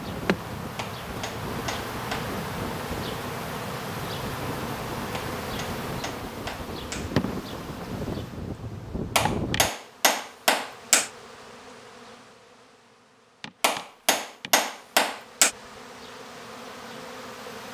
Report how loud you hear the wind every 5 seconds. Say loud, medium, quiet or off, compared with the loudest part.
loud, loud, off, off.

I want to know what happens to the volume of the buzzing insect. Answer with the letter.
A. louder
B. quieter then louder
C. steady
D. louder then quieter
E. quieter
E.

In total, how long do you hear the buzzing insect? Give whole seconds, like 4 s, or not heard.
18 s.